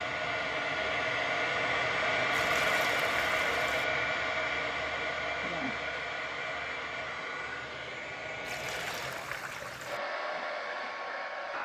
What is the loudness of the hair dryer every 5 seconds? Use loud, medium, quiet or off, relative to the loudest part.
loud, medium, medium.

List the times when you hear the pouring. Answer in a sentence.
The pouring can be heard from 2.3 to 3.9 s and from 8.4 to 10.0 s.